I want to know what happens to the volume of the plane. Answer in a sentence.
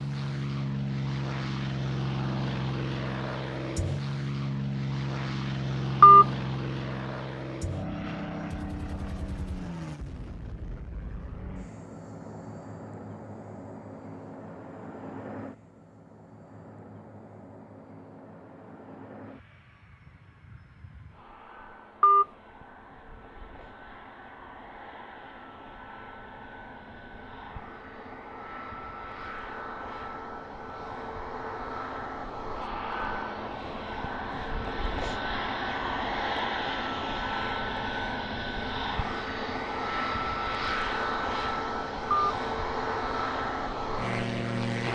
The loudness of the plane goes down, then up.